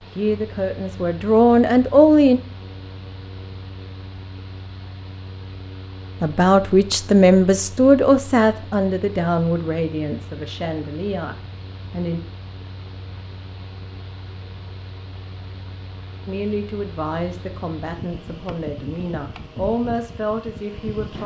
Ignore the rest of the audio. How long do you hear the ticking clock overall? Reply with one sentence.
The ticking clock can't be heard in this clip.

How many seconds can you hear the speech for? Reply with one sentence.
You can hear the speech for 13 seconds altogether.